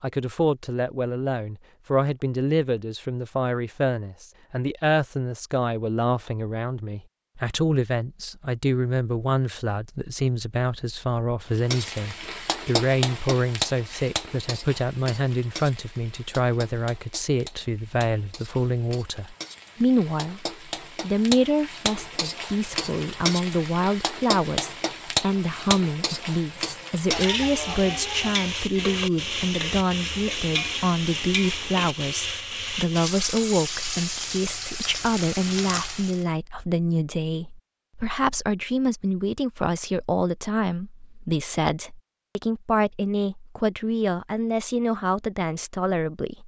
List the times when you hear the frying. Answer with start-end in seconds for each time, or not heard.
11.6-36.2.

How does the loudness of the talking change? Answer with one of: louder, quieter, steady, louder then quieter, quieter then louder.
steady.